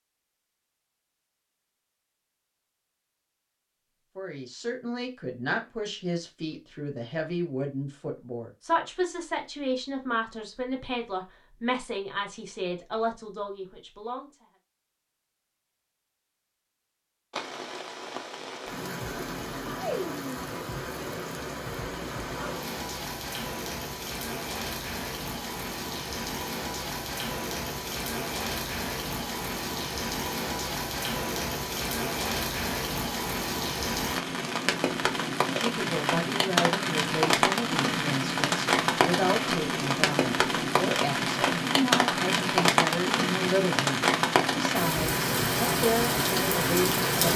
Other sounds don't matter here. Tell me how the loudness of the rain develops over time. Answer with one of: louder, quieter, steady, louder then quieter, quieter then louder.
louder.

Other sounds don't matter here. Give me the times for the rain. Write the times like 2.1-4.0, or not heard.
17.3-47.3.